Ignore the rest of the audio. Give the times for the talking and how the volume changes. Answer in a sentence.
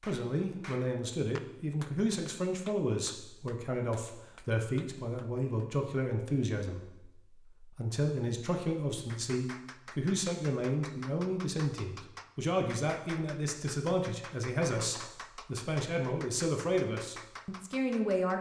The talking can be heard from 0.0 to 18.3 s, at a steady volume.